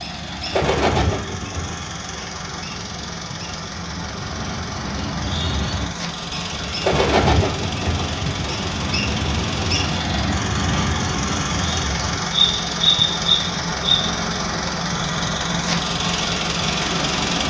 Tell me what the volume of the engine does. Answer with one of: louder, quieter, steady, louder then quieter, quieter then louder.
louder.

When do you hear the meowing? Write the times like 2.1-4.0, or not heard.
not heard.